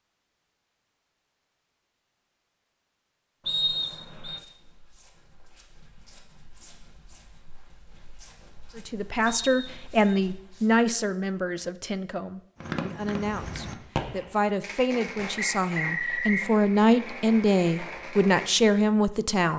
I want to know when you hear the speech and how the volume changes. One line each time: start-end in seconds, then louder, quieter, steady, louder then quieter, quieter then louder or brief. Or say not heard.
8.8-19.5 quieter then louder.